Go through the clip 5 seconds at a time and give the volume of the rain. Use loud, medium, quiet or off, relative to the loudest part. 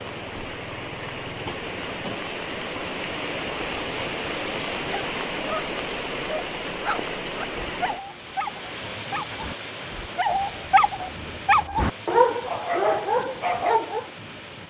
loud, loud, medium.